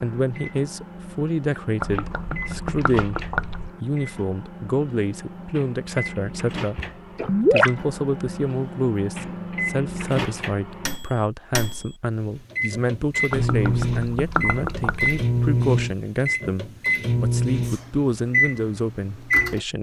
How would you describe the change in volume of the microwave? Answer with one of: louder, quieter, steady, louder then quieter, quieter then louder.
louder.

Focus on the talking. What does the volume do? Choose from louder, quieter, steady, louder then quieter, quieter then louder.
steady.